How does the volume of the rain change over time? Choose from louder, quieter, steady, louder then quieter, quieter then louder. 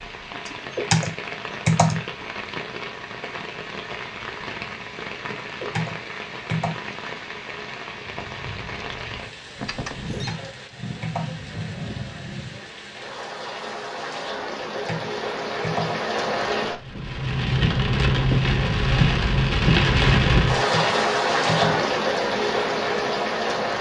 louder.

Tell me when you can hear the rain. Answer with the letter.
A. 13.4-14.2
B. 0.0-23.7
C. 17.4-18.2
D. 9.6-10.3
B.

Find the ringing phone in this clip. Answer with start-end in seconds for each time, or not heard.
9.6-10.3.